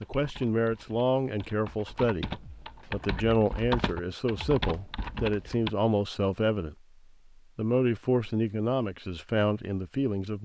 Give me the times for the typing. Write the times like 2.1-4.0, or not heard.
0.0-5.7.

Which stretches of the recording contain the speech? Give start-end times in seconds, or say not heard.
0.0-6.8, 7.5-10.4.